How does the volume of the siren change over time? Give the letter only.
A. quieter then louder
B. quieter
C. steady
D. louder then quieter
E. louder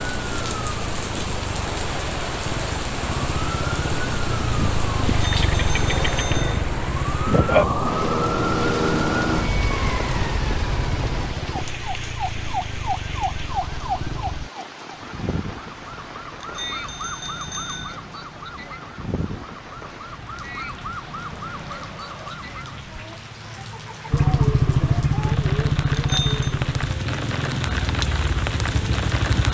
D.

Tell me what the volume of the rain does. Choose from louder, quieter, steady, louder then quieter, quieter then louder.
quieter then louder.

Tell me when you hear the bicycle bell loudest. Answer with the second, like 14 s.
26 s.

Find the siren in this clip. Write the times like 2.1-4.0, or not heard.
0.0-22.9.